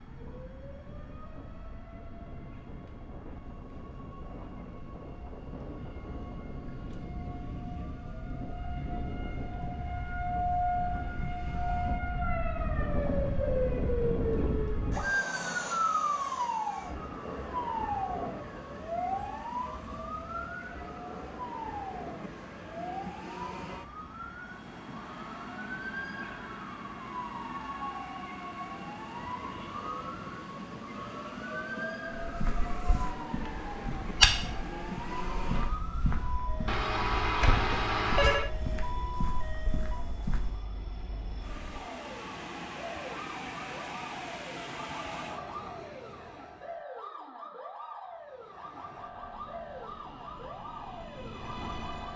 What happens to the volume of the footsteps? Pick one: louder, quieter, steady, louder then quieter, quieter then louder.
louder then quieter.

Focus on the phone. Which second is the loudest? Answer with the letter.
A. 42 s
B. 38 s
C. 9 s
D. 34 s
B.